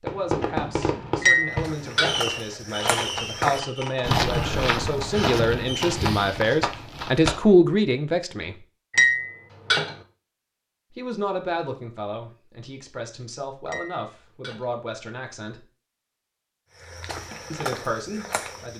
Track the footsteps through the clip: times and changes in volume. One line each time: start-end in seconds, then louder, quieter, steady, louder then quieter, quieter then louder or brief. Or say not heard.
1.5-7.3 louder then quieter
16.8-18.7 brief.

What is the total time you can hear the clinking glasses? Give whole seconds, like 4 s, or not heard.
3 s.